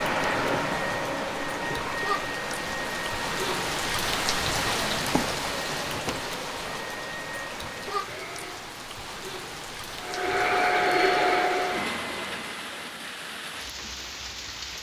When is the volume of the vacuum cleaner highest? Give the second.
11 s.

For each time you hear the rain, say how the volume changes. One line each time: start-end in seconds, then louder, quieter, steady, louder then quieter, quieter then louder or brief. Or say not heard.
0.0-14.7 louder then quieter.